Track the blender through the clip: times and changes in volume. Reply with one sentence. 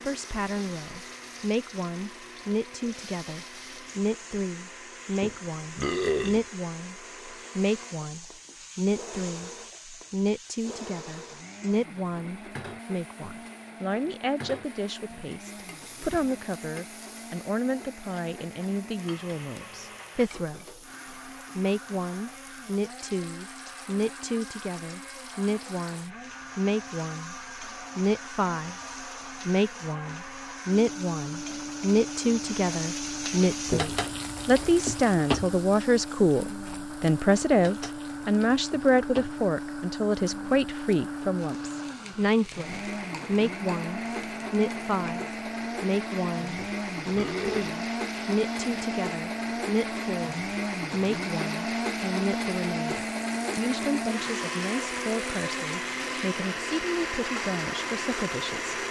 The blender can be heard from 0.0 to 58.8 s, getting louder.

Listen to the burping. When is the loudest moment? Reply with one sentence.
The volume of the burping peaks at 6 seconds.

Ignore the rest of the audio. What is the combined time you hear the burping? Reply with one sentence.
You can hear the burping for 3 seconds altogether.